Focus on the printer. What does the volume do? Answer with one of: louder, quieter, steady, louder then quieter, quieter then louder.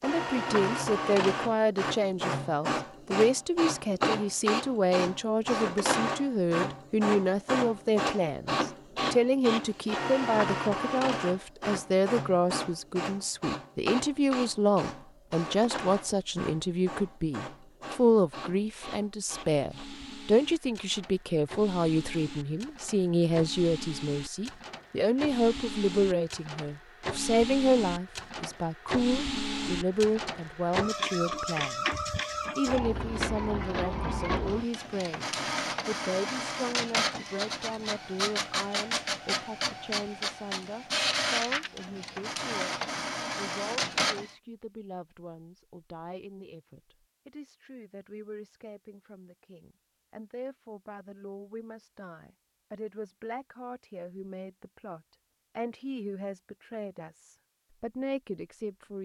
quieter then louder.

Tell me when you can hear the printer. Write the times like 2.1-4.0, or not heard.
0.0-44.3.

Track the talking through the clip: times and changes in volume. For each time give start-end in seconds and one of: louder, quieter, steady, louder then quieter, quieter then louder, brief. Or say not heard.
0.0-58.9 quieter.